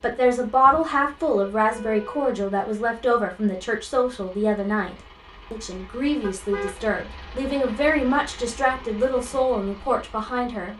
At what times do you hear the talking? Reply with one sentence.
The talking can be heard from 0.0 to 10.7 s.